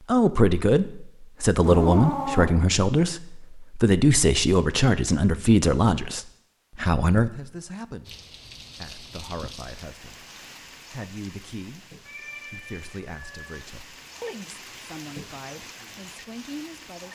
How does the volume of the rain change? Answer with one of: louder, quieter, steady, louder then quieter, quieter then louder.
quieter then louder.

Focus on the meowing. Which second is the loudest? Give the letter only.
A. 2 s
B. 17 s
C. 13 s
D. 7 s
A.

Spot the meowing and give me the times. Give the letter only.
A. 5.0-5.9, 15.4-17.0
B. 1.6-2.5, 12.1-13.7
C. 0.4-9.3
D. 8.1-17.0
B.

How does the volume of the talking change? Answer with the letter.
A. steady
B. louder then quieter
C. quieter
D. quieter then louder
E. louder
C.